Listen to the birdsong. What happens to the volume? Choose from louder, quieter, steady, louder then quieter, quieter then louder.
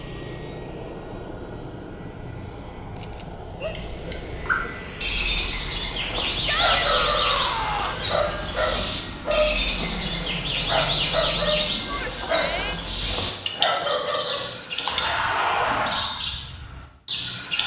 steady.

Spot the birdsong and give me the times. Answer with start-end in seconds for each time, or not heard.
3.6-17.6.